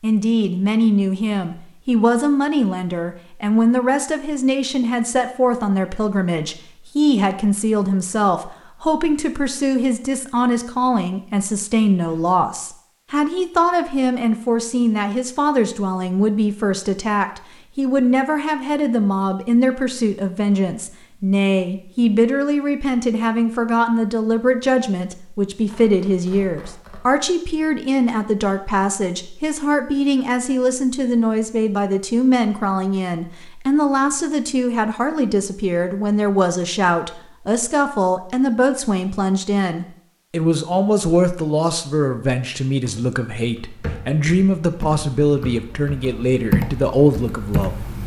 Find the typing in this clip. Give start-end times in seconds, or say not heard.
42.7-48.0.